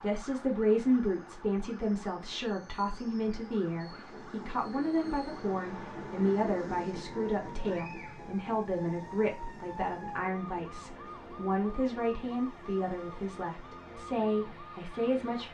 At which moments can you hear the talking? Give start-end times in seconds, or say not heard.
0.0-15.4.